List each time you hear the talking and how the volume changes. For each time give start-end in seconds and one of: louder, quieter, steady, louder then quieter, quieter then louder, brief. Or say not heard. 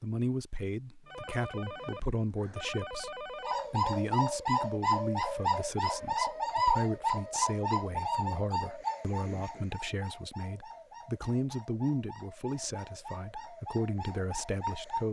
0.0-15.0 steady.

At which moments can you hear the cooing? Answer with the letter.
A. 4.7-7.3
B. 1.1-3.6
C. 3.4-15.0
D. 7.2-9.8
C.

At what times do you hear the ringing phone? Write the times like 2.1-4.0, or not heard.
1.1-3.6.